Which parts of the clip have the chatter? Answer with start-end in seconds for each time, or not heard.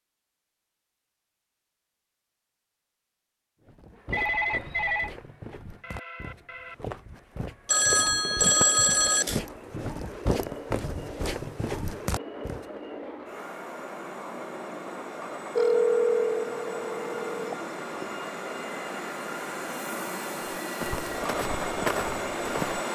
not heard.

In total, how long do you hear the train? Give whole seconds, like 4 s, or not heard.
19 s.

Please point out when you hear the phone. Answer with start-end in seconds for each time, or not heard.
4.1-5.1, 7.7-9.4, 15.6-18.1.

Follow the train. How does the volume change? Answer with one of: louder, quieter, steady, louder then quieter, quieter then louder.
louder.